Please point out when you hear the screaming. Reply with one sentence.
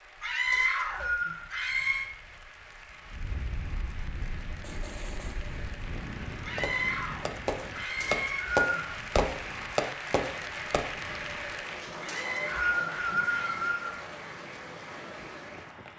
The screaming can be heard from 0.2 to 2.1 s, from 6.4 to 8.4 s and from 11.9 to 13.7 s.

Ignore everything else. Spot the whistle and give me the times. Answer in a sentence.
You can hear the whistle from 0.5 to 1.4 s, from 8.0 to 8.9 s and from 12.1 to 13.9 s.